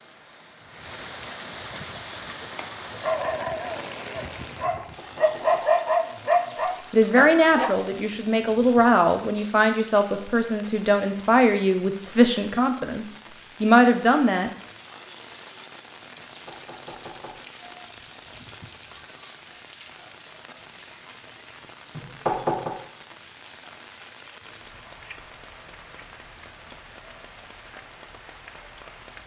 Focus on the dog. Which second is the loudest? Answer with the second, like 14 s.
6 s.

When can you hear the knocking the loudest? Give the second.
22 s.